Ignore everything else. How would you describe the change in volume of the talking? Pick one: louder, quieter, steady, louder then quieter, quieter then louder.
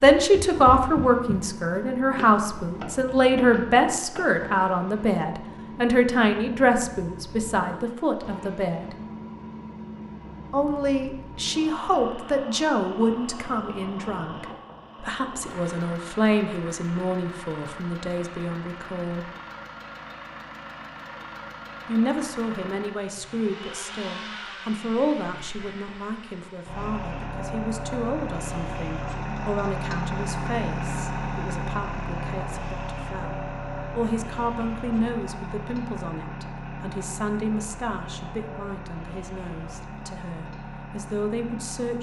quieter.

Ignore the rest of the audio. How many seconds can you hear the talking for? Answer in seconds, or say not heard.
38 s.